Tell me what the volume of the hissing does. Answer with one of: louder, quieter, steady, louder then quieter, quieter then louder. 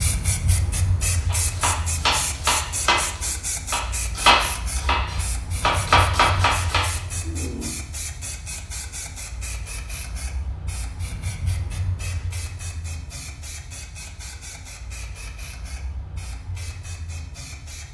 quieter.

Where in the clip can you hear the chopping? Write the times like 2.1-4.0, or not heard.
1.3-7.7.